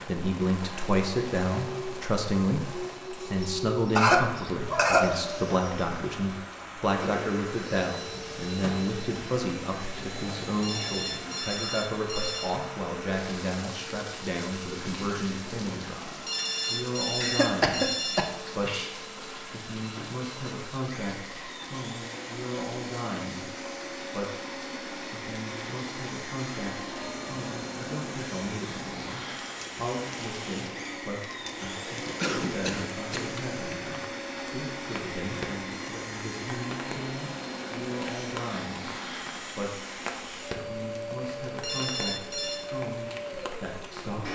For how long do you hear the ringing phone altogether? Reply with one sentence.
You can hear the ringing phone for 5 seconds altogether.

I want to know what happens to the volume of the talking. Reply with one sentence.
The volume of the talking goes down.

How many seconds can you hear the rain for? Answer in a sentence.
The rain can be heard for 44 seconds in total.